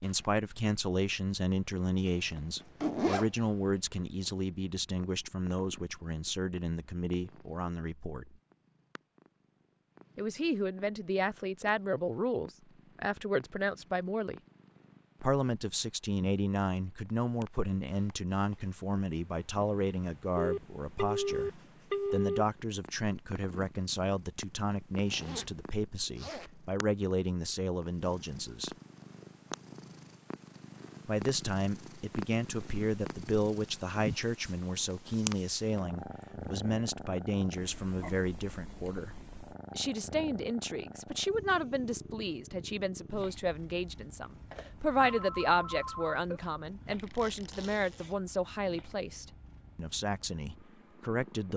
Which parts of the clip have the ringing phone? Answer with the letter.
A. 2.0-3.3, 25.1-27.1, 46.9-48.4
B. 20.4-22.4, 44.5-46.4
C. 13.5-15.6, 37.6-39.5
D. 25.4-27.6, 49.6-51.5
B.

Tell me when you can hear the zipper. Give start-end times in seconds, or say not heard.
2.0-3.3, 25.1-27.1, 46.9-48.4.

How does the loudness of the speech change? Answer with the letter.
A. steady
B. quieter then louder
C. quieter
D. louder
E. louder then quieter
A.